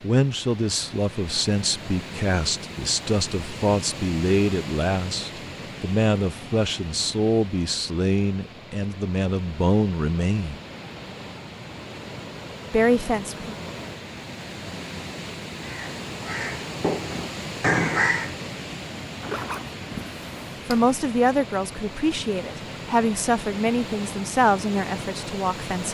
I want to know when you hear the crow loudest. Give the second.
18 s.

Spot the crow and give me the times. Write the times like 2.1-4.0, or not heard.
15.6-18.4.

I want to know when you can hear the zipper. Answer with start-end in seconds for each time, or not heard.
19.2-20.9.